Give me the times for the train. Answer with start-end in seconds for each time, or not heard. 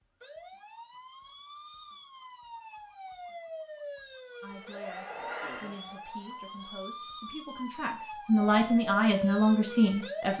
4.5-6.9.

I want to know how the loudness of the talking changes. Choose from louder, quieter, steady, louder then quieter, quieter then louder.
louder.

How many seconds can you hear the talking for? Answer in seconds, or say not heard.
6 s.